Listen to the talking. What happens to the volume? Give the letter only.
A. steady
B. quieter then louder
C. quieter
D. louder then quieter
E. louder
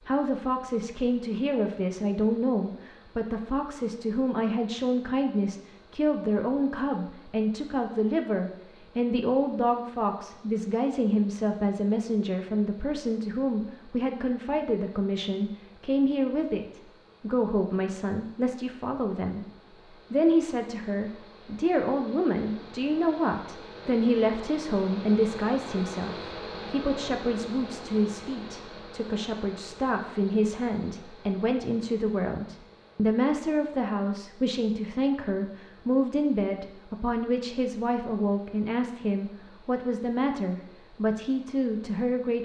A.